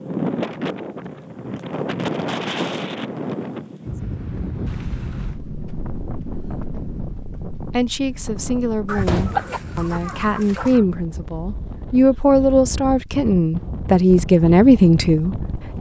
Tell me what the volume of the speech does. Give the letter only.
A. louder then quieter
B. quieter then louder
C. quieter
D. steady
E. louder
E.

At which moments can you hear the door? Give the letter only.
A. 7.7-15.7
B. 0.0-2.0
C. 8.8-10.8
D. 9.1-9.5
D.